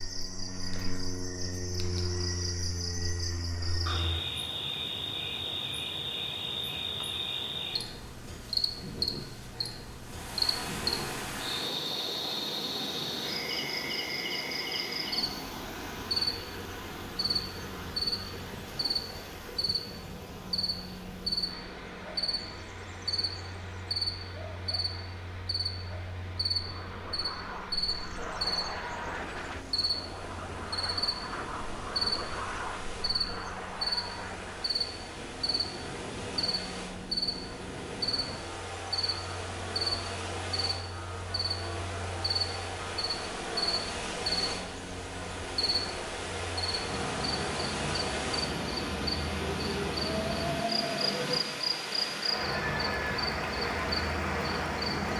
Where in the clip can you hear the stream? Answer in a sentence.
The stream can be heard from 10.0 to 55.1 s.